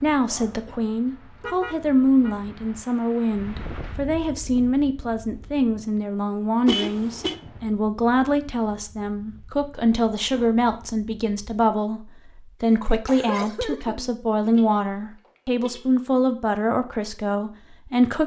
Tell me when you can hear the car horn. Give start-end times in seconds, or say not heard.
1.4-2.4, 6.7-7.4, 14.6-16.0.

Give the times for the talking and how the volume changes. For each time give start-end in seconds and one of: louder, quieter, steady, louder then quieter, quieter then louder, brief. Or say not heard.
0.0-18.2 steady.